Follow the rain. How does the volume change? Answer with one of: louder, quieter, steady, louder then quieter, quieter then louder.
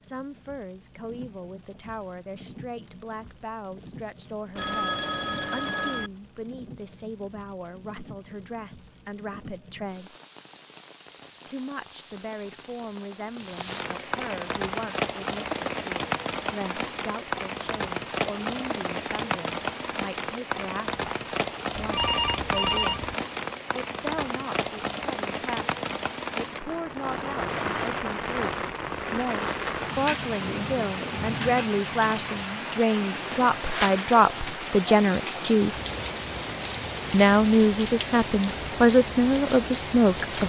louder.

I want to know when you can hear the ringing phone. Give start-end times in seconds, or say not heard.
4.5-6.1, 21.8-23.1.